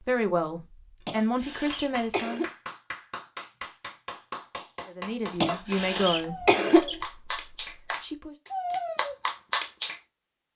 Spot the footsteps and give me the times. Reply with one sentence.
You can't hear the footsteps here.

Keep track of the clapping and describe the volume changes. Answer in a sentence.
The loudness of the clapping goes up.